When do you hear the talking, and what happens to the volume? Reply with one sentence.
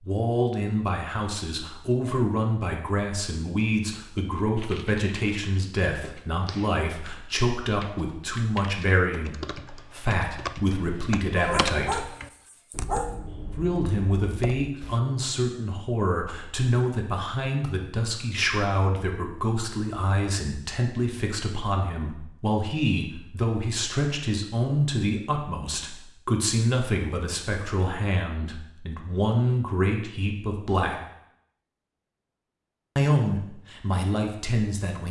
You can hear the talking from 0.0 to 12.1 s, at a steady volume; from 13.4 to 31.0 s, at a steady volume; and briefly from 33.0 to 35.0 s.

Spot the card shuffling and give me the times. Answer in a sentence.
The card shuffling can't be heard in this clip.